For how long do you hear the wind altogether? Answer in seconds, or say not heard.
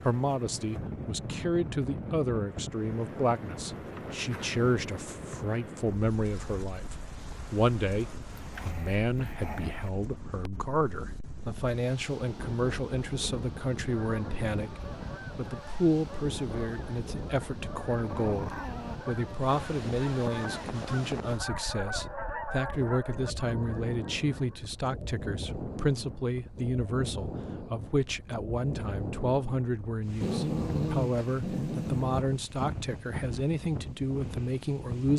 35 s.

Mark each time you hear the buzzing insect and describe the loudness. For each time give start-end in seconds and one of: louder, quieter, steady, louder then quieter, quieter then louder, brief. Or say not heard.
not heard.